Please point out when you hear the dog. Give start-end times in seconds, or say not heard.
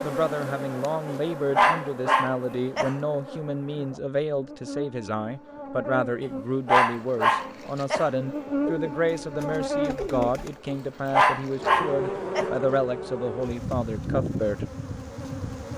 1.1-3.0, 6.2-8.1, 10.7-12.5.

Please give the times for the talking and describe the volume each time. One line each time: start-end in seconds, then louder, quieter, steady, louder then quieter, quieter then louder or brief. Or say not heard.
0.0-14.7 steady.